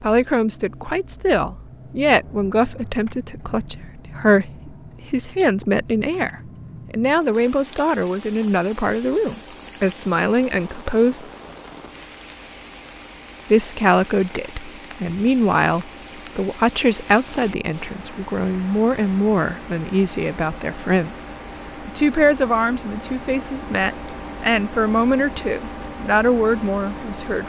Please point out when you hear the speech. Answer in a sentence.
The speech can be heard from 0.0 to 11.2 s, from 13.5 to 21.1 s and from 21.9 to 27.4 s.